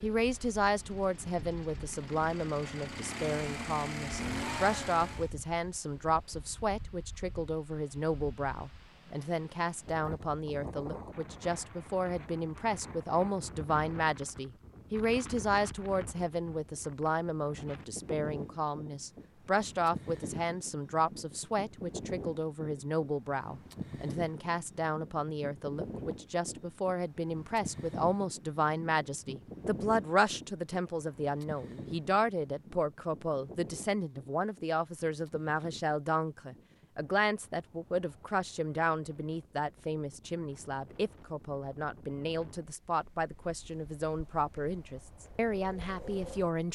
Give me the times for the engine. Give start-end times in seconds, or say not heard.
0.0-5.3.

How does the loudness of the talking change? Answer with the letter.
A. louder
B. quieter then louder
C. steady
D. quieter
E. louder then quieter
C.